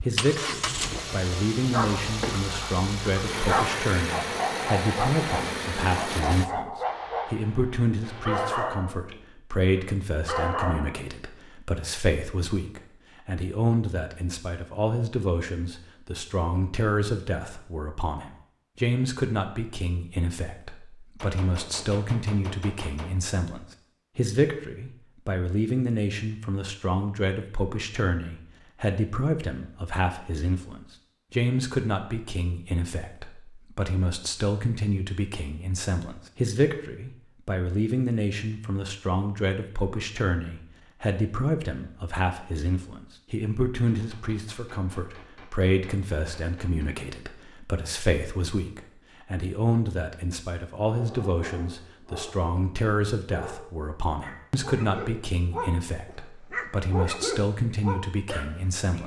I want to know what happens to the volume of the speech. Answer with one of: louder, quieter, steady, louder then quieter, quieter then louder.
steady.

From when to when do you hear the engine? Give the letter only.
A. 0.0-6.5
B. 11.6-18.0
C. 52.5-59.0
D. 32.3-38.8
A.